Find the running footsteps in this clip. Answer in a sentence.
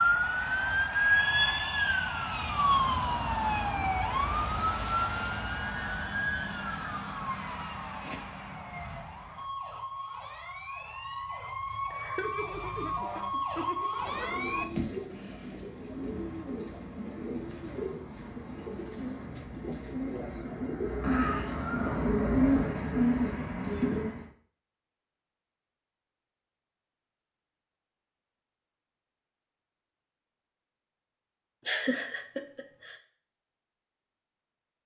The running footsteps can't be heard in this clip.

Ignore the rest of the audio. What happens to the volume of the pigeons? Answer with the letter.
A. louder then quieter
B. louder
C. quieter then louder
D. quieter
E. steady
B.